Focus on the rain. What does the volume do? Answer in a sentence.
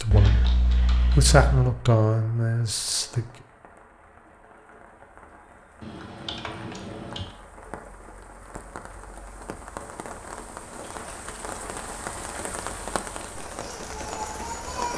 The loudness of the rain goes up.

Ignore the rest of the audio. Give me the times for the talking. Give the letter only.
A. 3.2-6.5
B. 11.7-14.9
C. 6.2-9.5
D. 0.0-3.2
D.